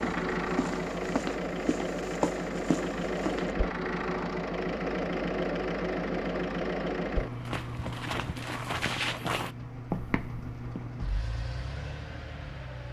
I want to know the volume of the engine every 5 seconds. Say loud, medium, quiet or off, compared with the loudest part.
loud, loud, medium.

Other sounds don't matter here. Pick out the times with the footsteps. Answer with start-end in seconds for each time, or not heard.
0.0-3.5, 7.2-10.9.